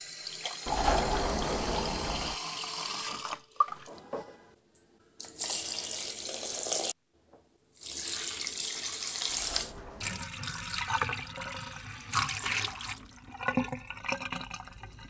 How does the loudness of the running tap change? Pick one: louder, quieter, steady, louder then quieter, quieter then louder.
steady.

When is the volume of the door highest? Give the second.
1 s.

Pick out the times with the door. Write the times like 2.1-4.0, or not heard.
0.7-2.4, 9.2-10.2.